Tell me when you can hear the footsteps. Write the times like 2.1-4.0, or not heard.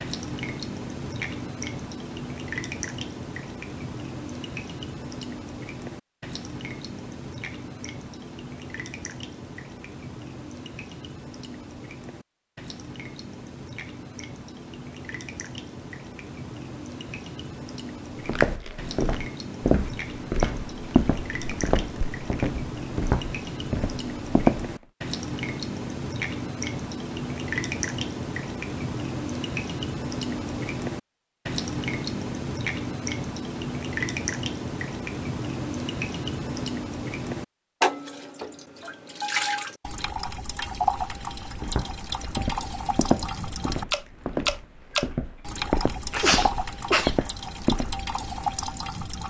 18.2-24.8, 41.6-48.0.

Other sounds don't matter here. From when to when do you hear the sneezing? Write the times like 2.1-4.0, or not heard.
46.1-47.1.